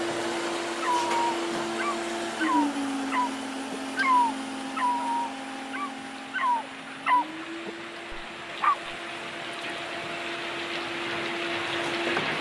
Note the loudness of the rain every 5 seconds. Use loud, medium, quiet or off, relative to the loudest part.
off, medium, loud.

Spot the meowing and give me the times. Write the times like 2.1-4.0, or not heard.
not heard.